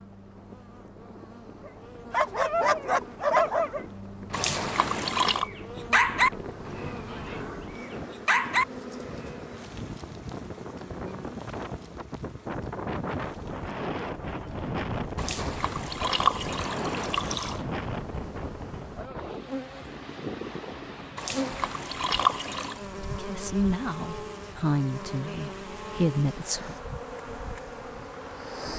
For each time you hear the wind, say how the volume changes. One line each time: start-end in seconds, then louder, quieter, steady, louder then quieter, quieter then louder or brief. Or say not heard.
0.0-28.6 louder then quieter.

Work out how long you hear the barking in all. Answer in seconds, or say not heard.
7 s.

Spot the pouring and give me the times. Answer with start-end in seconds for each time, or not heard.
4.3-5.5, 15.2-17.6, 21.1-22.8.